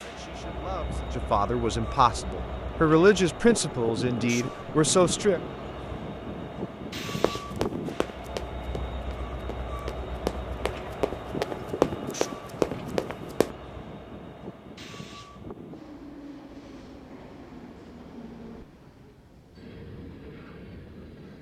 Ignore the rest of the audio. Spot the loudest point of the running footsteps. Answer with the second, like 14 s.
12 s.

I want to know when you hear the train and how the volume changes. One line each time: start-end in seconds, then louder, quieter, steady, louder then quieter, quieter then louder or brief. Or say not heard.
0.0-21.3 quieter.